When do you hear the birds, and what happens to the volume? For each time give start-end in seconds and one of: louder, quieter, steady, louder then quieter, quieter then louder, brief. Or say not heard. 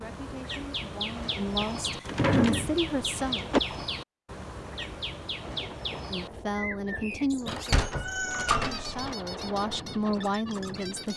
0.0-11.1 quieter.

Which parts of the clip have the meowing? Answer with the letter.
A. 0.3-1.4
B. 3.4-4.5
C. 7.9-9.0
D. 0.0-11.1
C.